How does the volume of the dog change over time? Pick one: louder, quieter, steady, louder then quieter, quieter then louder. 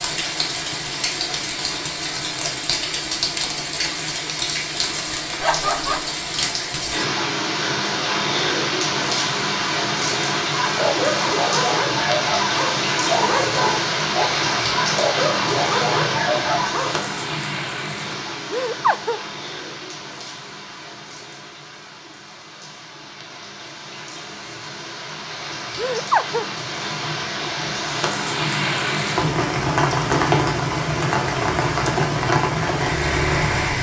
steady.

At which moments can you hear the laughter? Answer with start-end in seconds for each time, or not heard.
5.4-6.2, 18.5-19.2, 25.8-26.4.